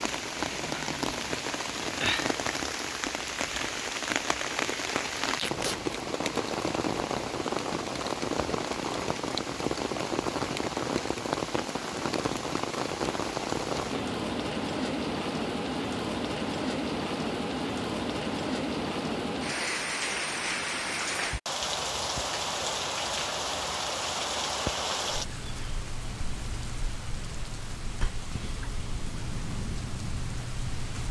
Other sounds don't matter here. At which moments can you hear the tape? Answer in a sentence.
The tape can be heard from 5.3 to 5.8 s.